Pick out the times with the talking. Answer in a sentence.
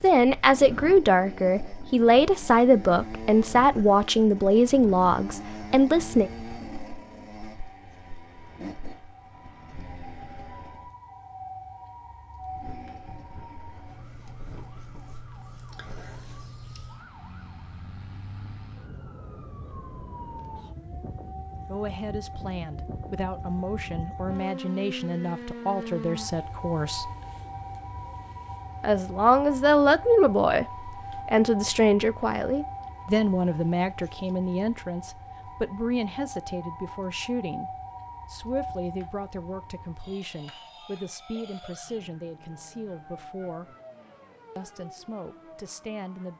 The talking can be heard from 0.0 to 6.3 s, from 21.6 to 27.1 s, from 28.8 to 30.6 s, from 31.2 to 37.7 s, from 38.3 to 43.8 s and from 44.5 to 46.3 s.